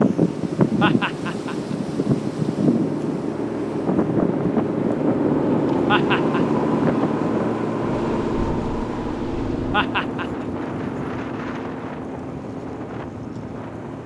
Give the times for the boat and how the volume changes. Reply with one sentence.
The boat can be heard from 0.0 to 14.0 s, getting louder then quieter.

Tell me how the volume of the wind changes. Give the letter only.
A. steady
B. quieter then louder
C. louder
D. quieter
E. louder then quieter
D.